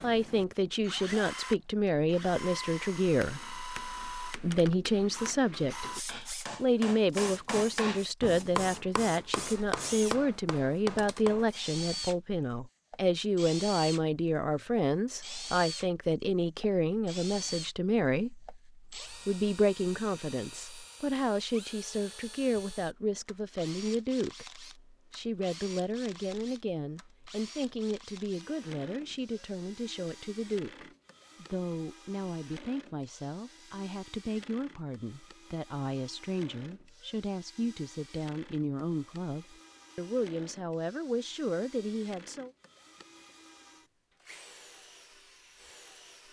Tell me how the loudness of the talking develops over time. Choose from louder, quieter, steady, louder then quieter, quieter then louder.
quieter.